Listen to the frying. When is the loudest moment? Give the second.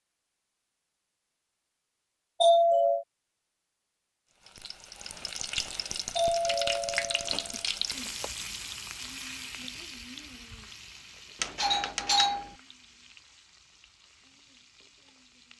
7 s.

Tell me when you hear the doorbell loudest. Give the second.
3 s.